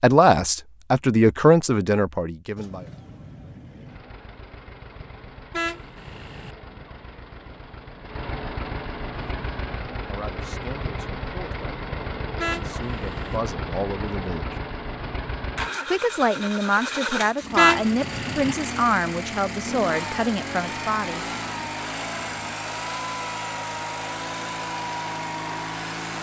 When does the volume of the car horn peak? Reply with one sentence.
The volume of the car horn peaks at 18 seconds.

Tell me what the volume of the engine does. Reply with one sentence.
The loudness of the engine goes up.